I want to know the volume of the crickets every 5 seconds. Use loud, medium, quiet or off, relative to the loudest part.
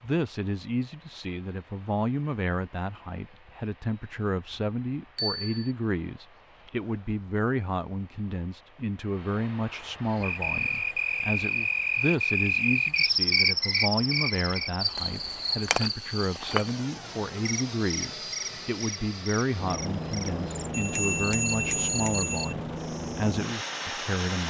off, off, loud, medium, quiet.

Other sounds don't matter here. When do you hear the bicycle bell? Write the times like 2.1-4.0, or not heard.
5.2-5.7, 20.7-22.6.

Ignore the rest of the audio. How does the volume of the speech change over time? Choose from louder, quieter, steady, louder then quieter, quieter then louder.
steady.